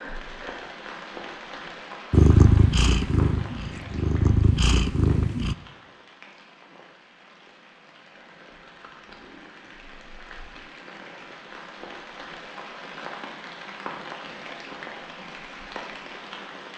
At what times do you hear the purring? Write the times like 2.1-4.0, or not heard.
2.1-5.5.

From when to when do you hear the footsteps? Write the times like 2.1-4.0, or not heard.
not heard.